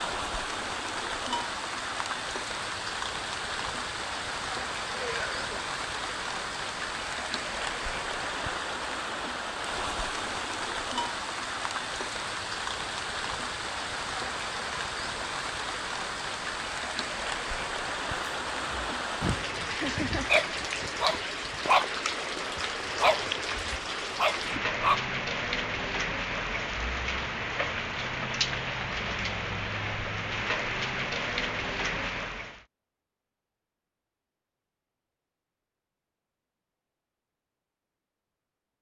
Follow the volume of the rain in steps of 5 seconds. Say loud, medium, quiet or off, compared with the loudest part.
loud, loud, loud, loud, loud, loud, loud, off.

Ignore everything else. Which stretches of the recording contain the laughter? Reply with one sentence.
The laughter can be heard from 5.0 to 5.6 s and from 19.8 to 20.3 s.